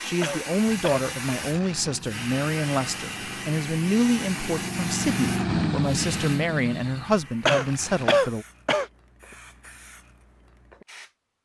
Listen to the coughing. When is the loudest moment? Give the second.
8 s.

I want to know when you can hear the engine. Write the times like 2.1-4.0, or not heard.
0.0-8.2.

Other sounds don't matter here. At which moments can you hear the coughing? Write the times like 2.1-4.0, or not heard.
0.2-1.1, 7.5-8.8.